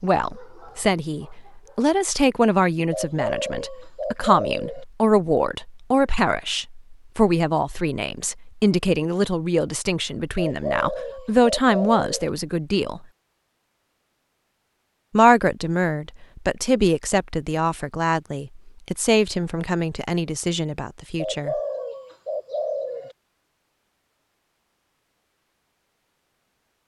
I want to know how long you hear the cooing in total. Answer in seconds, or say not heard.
6 s.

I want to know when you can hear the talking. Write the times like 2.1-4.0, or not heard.
0.0-13.1, 15.1-21.6.